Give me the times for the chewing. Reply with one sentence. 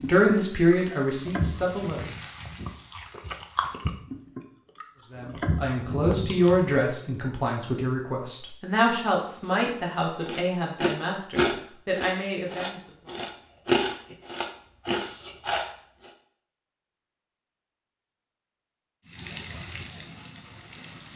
You can hear the chewing from 0.0 to 6.8 s and from 10.2 to 16.1 s.